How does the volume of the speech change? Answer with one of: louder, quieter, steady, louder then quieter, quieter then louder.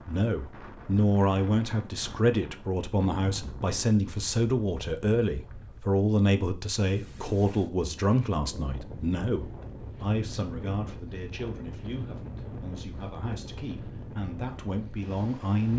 quieter.